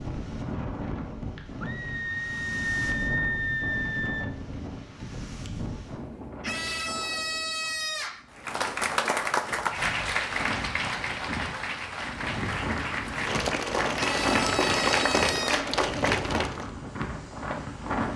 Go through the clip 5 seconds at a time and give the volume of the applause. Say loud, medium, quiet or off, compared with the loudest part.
off, loud, loud, loud.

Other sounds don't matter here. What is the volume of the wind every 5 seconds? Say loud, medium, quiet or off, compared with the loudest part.
loud, medium, loud, loud.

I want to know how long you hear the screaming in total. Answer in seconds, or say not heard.
6 s.